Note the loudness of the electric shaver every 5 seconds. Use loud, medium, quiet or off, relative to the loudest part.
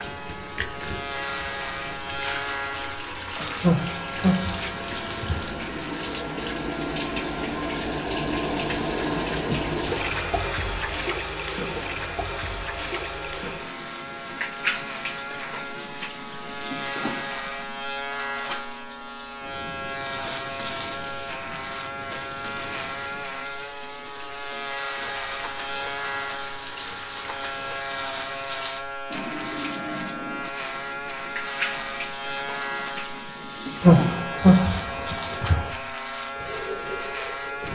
loud, medium, medium, loud, loud, loud, loud, loud.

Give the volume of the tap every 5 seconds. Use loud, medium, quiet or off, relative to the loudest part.
medium, loud, loud, medium, medium, medium, medium, medium.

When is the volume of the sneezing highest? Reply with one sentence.
The volume of the sneezing peaks at 34 seconds.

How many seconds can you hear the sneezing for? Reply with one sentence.
The sneezing can be heard for 4 seconds in total.